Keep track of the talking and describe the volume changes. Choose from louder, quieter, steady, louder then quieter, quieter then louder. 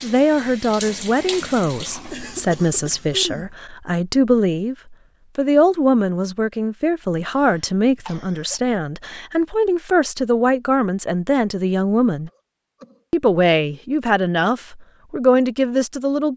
steady.